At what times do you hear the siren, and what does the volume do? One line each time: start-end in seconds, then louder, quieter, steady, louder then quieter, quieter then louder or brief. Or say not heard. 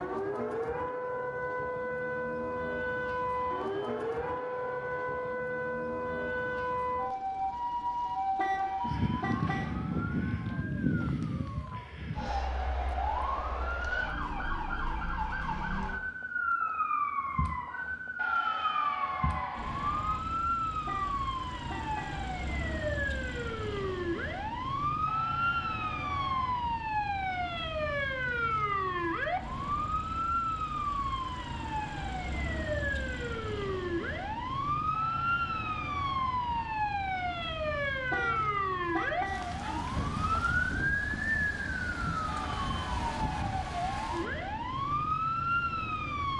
0.0-46.3 steady.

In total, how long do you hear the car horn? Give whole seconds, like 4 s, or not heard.
4 s.